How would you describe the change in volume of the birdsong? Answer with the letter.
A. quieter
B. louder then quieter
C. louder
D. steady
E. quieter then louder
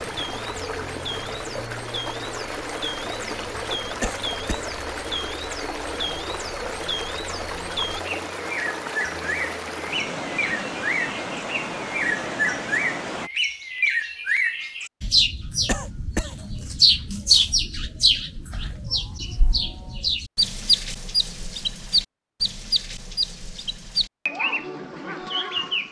C.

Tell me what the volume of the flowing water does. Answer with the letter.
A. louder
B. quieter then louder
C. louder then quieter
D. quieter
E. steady
E.